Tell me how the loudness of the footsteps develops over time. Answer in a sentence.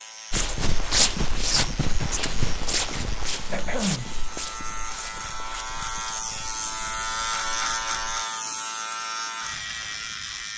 The loudness of the footsteps goes down.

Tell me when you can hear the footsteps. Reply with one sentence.
The footsteps can be heard from 0.3 to 8.2 s.